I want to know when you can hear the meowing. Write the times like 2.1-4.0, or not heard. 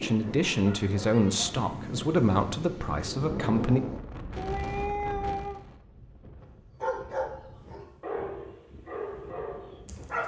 4.3-5.6.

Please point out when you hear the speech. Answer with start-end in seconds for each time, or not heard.
0.0-3.8.